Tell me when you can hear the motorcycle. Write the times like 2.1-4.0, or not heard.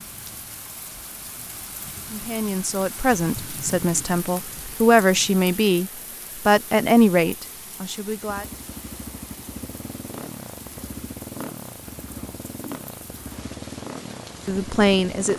8.2-15.3.